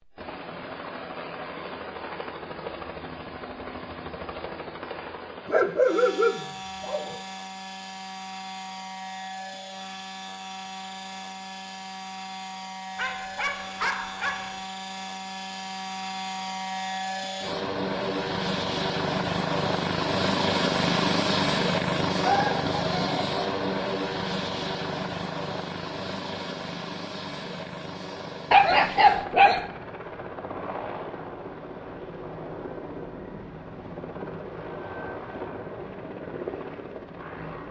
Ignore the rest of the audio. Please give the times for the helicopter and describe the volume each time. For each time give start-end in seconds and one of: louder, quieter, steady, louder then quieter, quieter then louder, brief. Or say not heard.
0.0-37.6 louder then quieter.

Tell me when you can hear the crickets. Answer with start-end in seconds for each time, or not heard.
not heard.